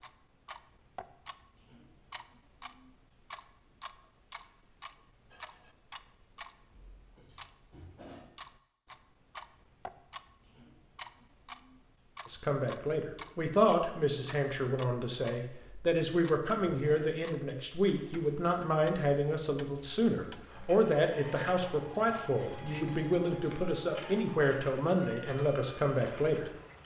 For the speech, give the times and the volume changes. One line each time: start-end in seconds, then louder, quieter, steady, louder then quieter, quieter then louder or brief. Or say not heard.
12.2-26.5 steady.